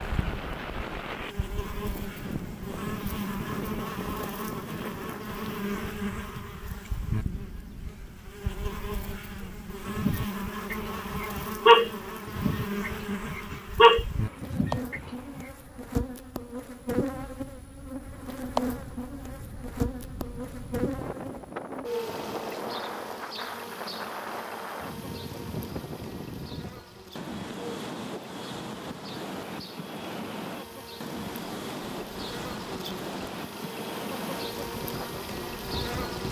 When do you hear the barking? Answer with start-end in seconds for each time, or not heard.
9.8-15.4.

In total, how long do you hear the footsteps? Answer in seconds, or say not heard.
not heard.